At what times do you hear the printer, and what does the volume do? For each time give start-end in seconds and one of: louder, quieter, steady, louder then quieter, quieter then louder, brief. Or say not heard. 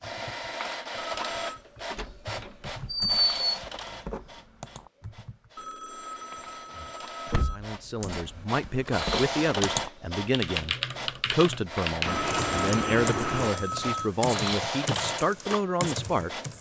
0.0-16.5 quieter then louder.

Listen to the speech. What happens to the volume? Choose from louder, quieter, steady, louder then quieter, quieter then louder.
steady.